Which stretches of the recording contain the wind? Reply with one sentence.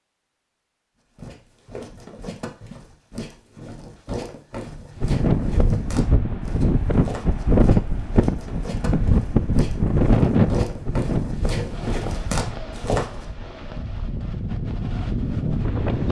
The wind can be heard from 5.0 to 16.0 s.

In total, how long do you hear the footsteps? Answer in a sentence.
You can hear the footsteps for 12 seconds altogether.